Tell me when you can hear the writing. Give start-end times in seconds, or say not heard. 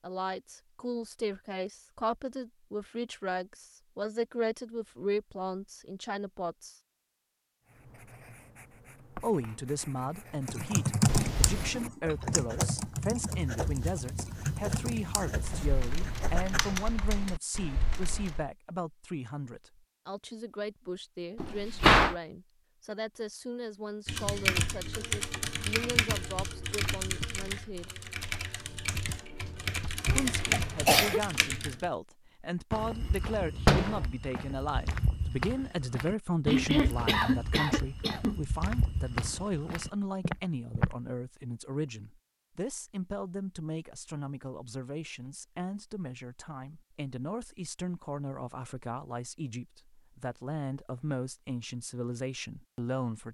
7.7-16.9.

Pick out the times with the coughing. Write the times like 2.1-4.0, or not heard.
11.1-11.9, 30.1-31.2, 36.5-38.4.